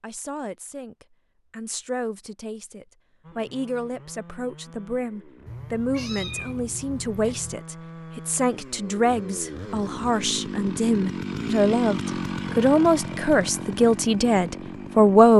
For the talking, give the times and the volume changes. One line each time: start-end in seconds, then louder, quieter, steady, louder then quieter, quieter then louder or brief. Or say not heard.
0.0-15.3 louder.